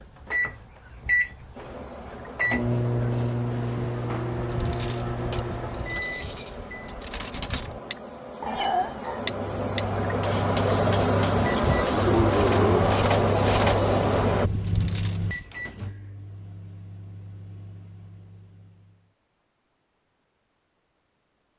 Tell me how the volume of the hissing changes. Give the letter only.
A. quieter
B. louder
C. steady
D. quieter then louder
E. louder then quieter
B.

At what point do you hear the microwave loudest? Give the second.
3 s.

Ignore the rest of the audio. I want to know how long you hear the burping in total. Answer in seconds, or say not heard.
2 s.